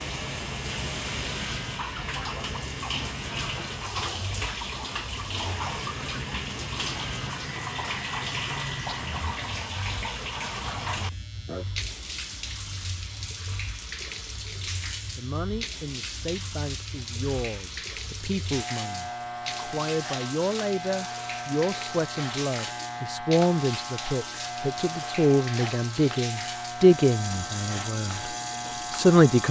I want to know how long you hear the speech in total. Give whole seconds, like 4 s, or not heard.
14 s.